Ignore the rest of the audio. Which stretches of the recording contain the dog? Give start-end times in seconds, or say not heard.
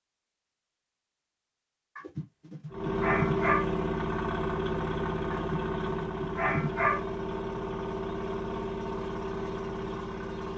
1.9-3.6, 5.3-7.0.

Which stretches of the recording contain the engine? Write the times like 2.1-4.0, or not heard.
2.7-10.5.